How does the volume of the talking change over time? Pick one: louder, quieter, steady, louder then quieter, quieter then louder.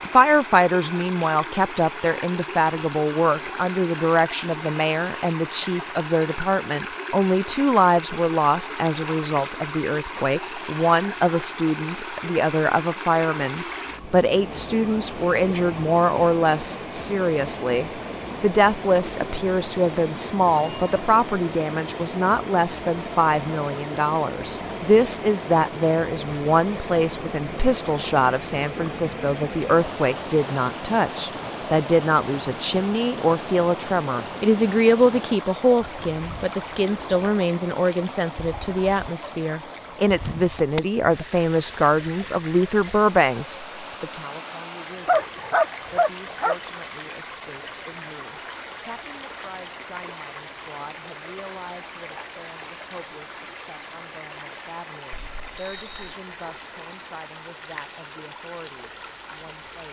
quieter.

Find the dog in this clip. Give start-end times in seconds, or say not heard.
45.0-46.5.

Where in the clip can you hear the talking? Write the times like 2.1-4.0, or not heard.
0.0-59.8.